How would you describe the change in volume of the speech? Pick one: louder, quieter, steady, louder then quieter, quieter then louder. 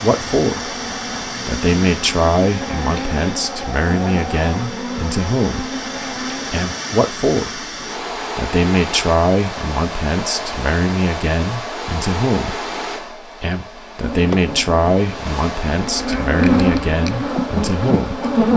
steady.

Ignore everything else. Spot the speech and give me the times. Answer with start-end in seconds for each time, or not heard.
0.0-5.7, 6.5-12.6, 13.4-18.2.